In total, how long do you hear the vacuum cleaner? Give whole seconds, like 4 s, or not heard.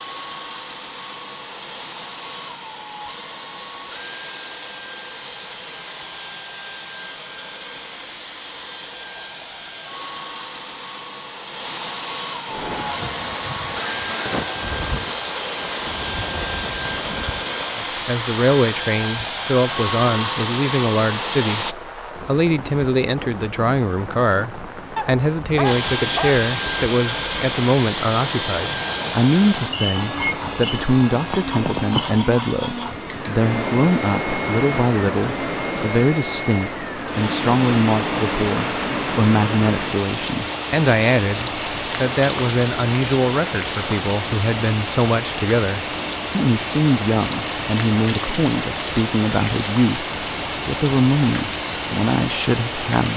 49 s.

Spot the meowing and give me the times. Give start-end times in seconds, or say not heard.
not heard.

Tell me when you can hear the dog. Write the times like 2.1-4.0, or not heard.
24.9-26.4.